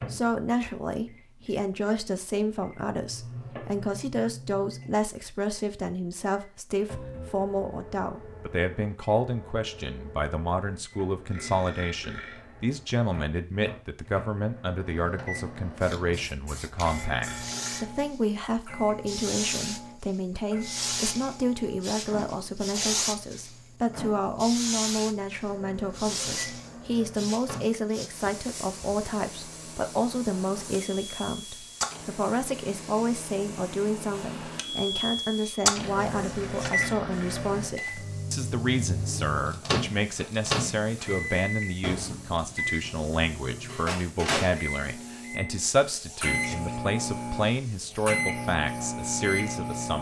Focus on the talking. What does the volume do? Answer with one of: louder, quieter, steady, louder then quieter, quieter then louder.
steady.